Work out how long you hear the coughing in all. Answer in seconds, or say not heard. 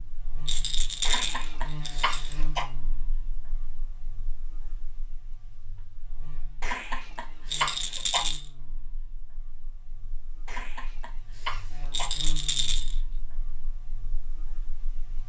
5 s.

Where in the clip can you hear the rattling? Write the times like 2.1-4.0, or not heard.
0.5-2.4, 7.5-8.4, 11.9-12.9.